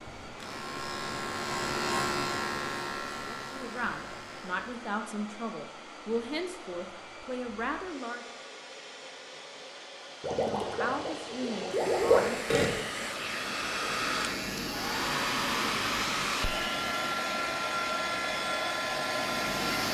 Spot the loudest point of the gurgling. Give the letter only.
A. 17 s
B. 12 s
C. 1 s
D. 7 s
B.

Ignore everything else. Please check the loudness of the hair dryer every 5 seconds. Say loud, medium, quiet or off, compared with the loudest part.
quiet, quiet, medium, loud.